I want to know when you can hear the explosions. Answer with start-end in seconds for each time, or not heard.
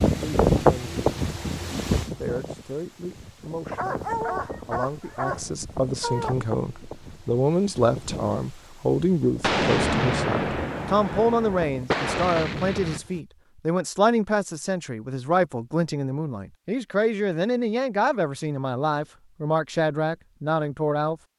9.4-13.0.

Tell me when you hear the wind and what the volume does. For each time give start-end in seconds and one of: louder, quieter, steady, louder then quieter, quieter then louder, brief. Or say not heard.
0.0-13.2 quieter.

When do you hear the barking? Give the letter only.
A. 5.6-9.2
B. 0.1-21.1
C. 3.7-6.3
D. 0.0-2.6
C.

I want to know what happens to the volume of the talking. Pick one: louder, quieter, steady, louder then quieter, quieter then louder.
louder.